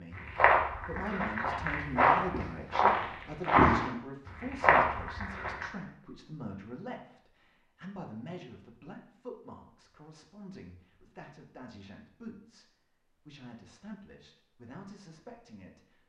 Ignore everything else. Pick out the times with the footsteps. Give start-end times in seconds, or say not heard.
0.1-5.7.